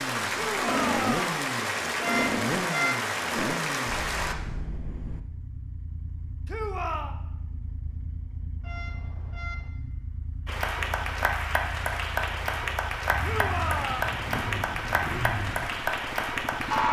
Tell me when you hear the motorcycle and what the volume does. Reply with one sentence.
The motorcycle can be heard from 0.0 to 16.8 s, getting quieter then louder.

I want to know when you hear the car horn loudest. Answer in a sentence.
The loudest moment of the car horn is at 3 seconds.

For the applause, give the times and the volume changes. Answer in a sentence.
You can hear the applause from 0.0 to 4.3 s, at a steady volume; and from 10.4 to 16.8 s, at a steady volume.